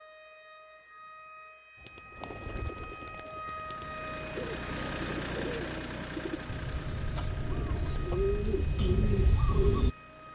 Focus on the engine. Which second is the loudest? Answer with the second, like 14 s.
5 s.